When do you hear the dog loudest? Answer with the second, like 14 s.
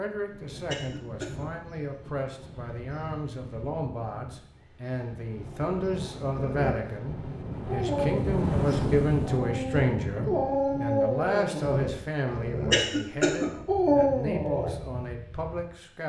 14 s.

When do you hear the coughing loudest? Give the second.
13 s.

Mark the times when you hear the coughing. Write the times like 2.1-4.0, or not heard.
0.7-1.5, 12.7-13.5.